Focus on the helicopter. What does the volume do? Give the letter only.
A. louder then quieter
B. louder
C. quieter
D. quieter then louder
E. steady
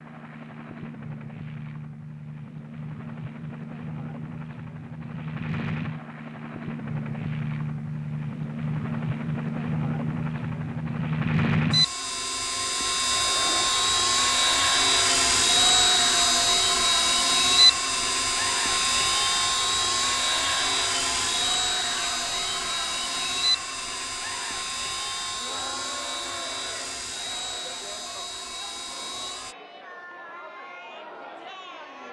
A.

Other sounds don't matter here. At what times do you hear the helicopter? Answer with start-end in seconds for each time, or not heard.
0.0-29.6.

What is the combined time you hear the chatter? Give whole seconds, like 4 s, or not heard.
19 s.